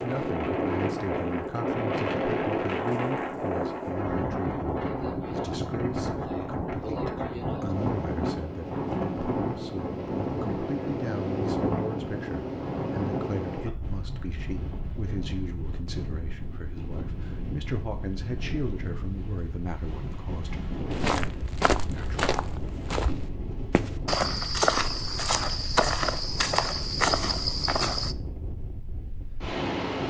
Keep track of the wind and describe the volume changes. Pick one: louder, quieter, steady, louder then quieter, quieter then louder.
quieter.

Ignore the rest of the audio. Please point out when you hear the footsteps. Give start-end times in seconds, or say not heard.
20.9-28.1.